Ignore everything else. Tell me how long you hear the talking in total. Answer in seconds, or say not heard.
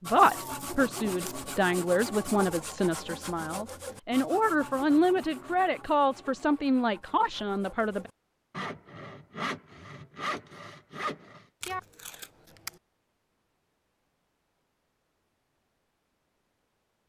8 s.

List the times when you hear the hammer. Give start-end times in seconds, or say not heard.
not heard.